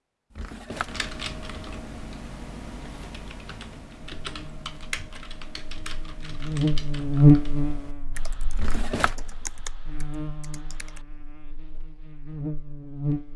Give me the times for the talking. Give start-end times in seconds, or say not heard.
not heard.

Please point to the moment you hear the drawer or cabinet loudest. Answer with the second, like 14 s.
9 s.